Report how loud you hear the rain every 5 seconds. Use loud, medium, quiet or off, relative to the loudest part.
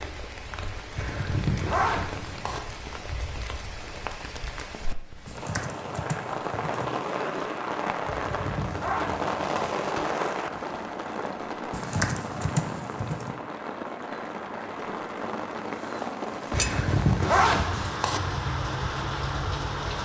medium, loud, loud, loud.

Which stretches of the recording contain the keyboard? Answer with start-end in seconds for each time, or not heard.
5.2-7.0, 11.7-13.3.